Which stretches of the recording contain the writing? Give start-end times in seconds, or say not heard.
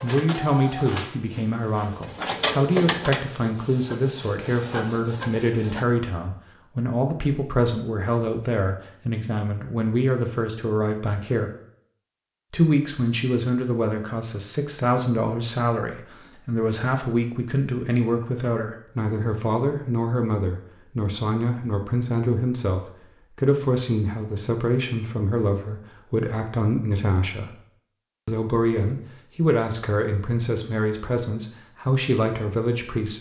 not heard.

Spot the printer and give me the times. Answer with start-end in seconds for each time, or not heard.
0.0-5.8.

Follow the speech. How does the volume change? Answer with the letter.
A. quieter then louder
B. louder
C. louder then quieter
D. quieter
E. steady
E.